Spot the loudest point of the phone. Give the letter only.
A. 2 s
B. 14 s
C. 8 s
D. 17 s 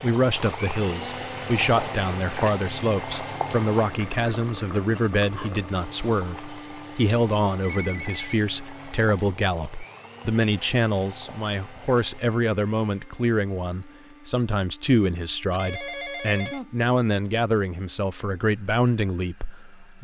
C.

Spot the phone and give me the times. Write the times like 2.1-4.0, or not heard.
7.0-8.3, 15.5-16.7.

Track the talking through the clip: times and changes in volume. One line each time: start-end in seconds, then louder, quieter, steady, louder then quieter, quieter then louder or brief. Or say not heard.
0.0-20.0 steady.